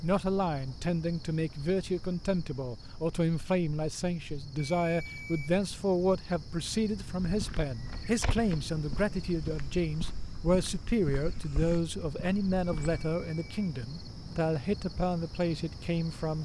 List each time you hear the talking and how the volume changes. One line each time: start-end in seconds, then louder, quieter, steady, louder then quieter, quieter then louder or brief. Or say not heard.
0.0-16.4 steady.